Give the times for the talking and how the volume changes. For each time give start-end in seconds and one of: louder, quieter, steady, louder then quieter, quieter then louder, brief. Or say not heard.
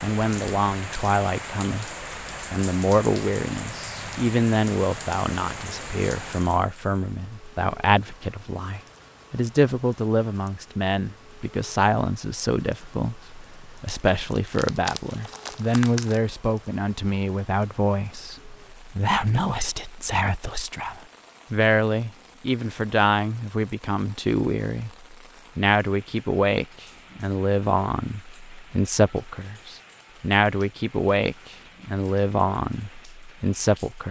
0.0-1.9 brief
2.5-34.0 steady.